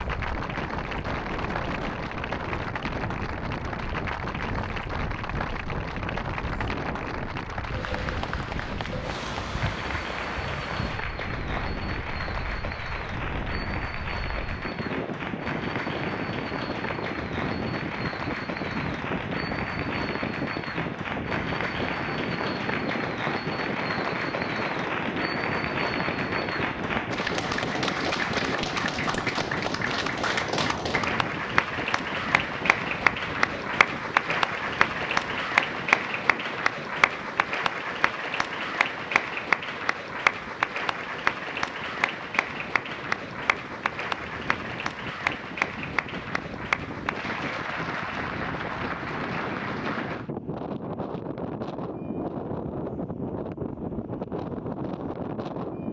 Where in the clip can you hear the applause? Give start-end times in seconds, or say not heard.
0.0-50.3.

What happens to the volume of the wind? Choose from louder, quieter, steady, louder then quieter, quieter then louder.
quieter then louder.